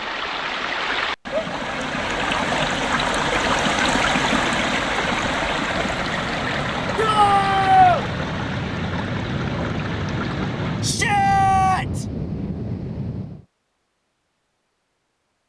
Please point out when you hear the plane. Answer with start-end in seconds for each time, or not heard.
5.5-13.4.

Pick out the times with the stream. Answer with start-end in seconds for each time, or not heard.
0.0-11.0.